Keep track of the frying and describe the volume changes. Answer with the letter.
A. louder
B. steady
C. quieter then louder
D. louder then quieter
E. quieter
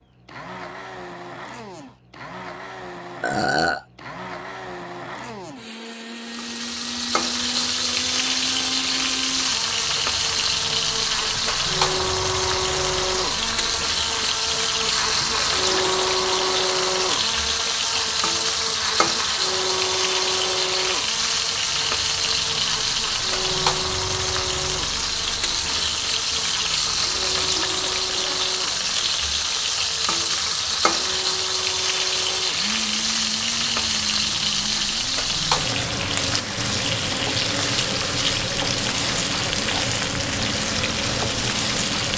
B.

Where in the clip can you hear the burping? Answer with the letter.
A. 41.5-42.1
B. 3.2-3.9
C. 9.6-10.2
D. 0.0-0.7
B.